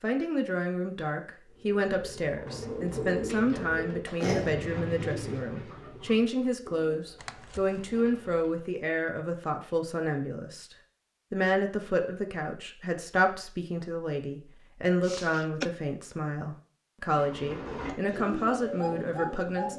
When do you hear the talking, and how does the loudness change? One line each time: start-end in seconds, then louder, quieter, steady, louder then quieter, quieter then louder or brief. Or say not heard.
0.0-19.7 steady.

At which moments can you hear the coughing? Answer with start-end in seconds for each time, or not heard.
4.0-4.5, 7.2-7.8, 15.0-15.7.